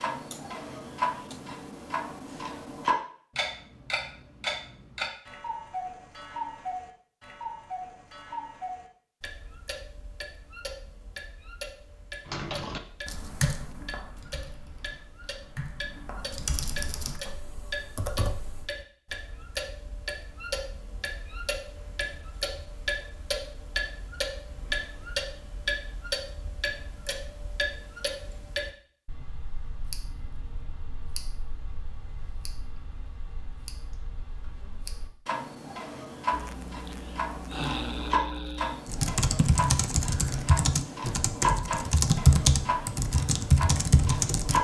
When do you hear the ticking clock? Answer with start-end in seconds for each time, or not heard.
0.0-44.5.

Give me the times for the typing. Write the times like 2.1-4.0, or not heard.
12.2-18.6, 38.9-44.5.